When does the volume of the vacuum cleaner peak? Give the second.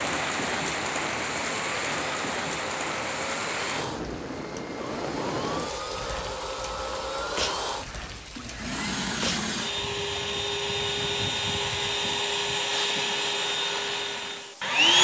15 s.